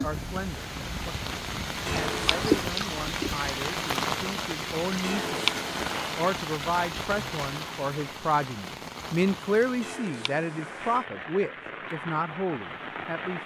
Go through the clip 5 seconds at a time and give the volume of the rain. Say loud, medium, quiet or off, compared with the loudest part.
loud, loud, medium.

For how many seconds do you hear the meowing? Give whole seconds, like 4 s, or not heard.
3 s.